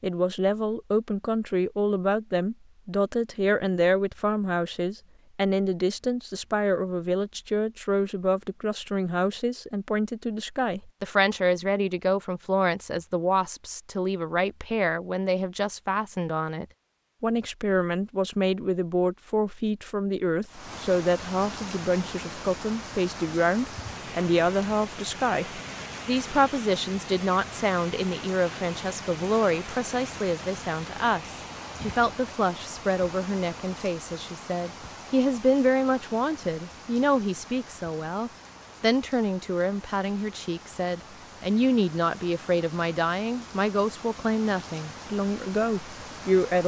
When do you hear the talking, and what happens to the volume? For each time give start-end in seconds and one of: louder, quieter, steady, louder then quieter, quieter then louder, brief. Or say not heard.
0.0-46.6 steady.